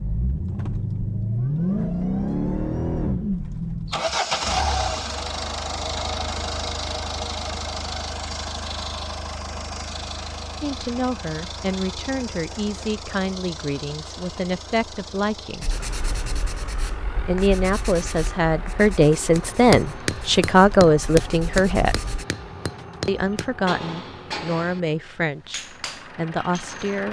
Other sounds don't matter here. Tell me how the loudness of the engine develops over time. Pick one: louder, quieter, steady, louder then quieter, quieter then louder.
quieter.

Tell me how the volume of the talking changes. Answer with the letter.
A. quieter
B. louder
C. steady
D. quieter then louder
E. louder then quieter
E.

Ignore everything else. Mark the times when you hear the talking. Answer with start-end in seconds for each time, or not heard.
10.6-15.8, 17.2-22.1, 23.1-27.0.